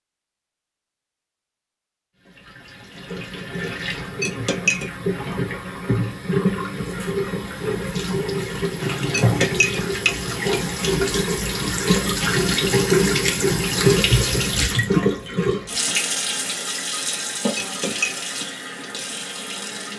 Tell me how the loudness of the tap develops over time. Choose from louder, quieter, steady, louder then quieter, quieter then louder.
louder then quieter.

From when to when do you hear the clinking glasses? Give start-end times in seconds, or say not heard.
4.2-5.0, 9.1-10.7, 17.6-18.2.